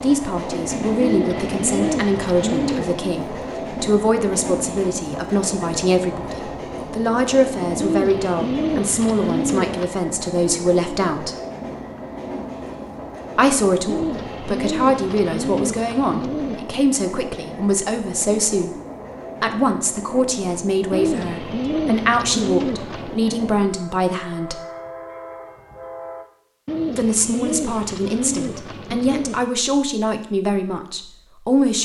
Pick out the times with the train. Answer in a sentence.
You can hear the train from 0.0 to 26.2 s.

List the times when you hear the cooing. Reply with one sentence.
The cooing can be heard from 1.0 to 2.9 s, from 7.8 to 9.9 s, from 13.8 to 16.6 s, from 20.9 to 23.2 s and from 26.6 to 29.5 s.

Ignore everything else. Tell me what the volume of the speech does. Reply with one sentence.
The volume of the speech stays about the same.